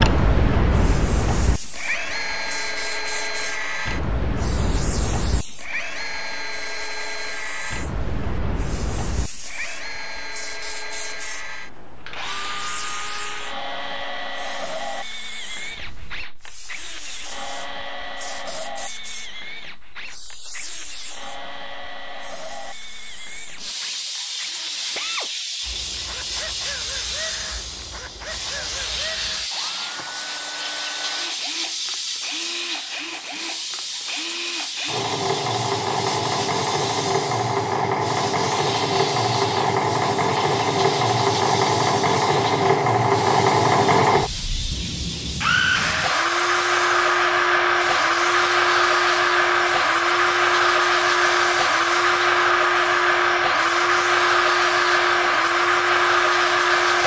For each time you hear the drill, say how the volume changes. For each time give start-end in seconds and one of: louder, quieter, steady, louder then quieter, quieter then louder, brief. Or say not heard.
0.0-57.0 quieter then louder.